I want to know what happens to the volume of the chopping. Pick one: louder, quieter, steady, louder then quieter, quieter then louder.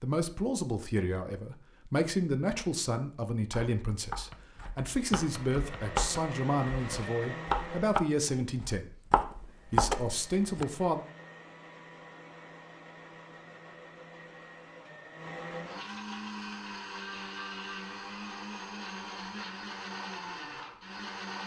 louder.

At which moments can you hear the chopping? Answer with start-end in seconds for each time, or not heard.
3.5-10.7.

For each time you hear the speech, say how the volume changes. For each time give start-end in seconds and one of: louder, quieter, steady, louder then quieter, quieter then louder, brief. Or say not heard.
0.0-11.1 steady.